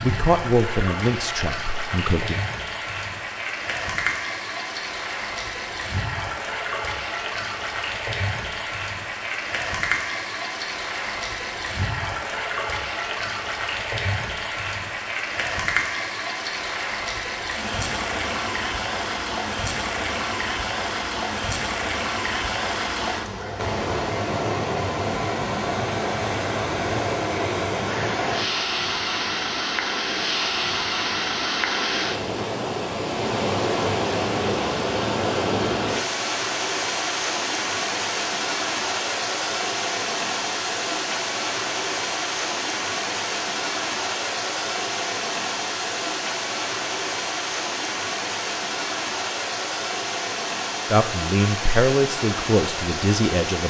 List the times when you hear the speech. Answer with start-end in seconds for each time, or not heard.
0.0-2.4, 50.9-53.6.